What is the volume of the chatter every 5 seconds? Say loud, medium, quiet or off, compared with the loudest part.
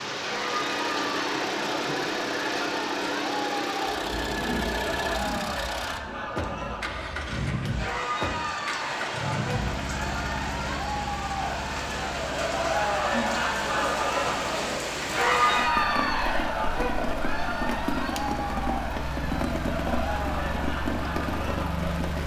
medium, medium, loud, loud, medium.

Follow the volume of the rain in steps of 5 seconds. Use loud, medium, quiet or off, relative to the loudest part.
loud, medium, loud, loud, loud.